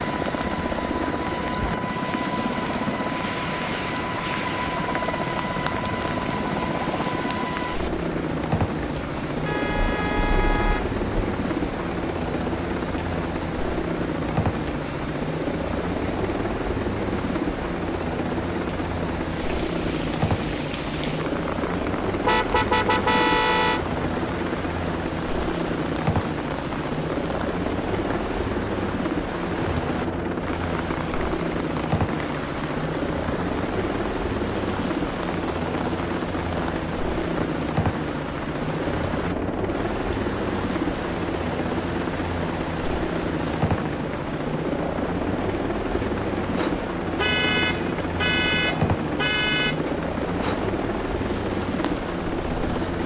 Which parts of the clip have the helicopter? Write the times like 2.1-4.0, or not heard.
0.0-53.0.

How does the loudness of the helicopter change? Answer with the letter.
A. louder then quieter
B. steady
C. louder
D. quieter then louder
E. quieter
B.